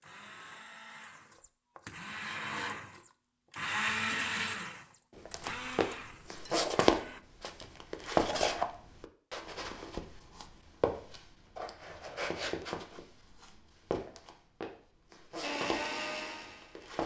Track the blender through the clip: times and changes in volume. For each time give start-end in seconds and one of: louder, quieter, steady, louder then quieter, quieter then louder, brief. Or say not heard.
0.0-7.2 louder then quieter
15.4-16.9 brief.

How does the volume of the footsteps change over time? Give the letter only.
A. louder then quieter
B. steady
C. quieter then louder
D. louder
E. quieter
E.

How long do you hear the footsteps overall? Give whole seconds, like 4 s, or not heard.
12 s.